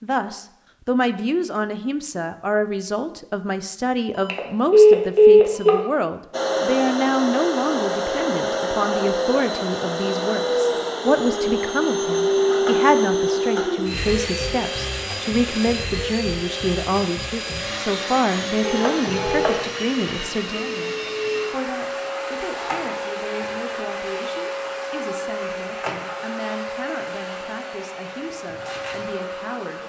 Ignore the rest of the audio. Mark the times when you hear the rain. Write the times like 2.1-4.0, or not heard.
not heard.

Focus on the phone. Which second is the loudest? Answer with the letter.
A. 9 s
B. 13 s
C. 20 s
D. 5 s
D.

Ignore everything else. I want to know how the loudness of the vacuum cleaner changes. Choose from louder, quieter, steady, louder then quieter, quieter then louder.
quieter.